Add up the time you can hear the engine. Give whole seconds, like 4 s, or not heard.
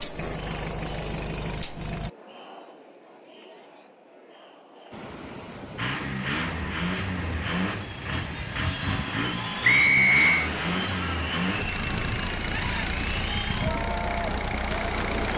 12 s.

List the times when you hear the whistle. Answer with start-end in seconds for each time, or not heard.
9.6-10.5.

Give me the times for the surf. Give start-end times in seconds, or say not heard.
4.9-15.3.